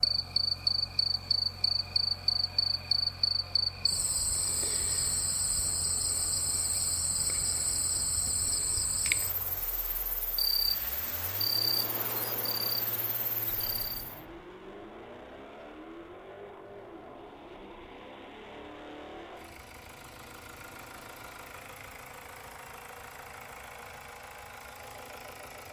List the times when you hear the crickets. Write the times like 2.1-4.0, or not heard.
0.0-14.2.